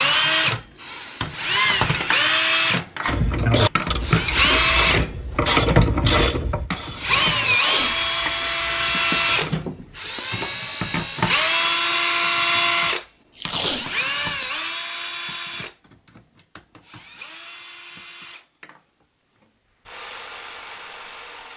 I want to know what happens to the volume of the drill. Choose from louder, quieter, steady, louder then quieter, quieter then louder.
quieter.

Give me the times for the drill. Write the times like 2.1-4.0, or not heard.
0.0-21.5.